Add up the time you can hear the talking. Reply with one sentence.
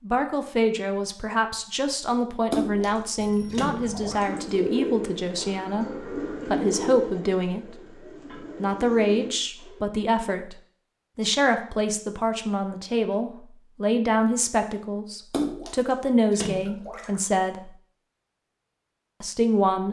The talking can be heard for 18 seconds in total.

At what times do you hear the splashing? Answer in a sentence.
You can hear the splashing from 2.5 to 4.5 s and from 15.3 to 17.2 s.